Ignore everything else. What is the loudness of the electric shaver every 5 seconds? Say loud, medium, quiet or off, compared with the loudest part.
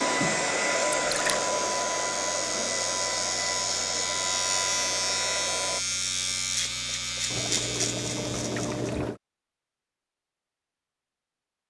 loud, loud, off.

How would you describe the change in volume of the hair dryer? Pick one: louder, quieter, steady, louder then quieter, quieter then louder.
quieter.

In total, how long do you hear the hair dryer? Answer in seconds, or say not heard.
6 s.